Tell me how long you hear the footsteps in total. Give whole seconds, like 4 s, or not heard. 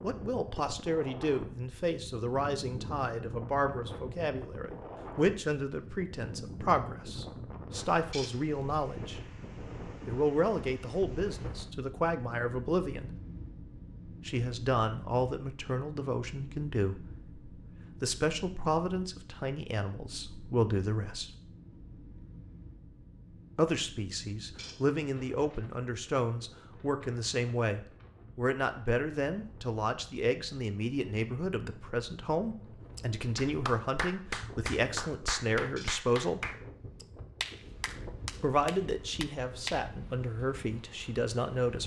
not heard.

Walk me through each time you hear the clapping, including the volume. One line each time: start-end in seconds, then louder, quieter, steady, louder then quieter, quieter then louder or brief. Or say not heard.
33.0-39.9 steady.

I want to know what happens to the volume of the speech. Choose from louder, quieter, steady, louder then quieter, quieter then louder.
steady.